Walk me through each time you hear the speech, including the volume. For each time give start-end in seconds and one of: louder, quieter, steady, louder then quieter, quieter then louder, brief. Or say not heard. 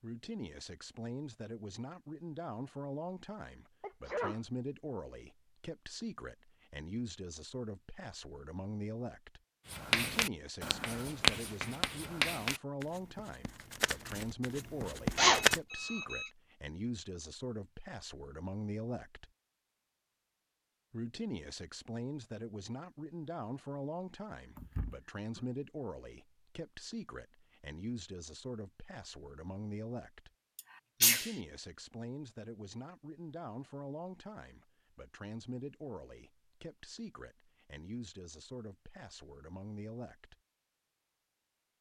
0.0-19.3 steady
20.9-30.3 steady
31.0-40.4 steady.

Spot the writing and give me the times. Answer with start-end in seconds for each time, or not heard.
9.7-15.6.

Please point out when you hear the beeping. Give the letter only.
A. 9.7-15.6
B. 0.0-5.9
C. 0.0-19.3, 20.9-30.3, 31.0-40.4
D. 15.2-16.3
D.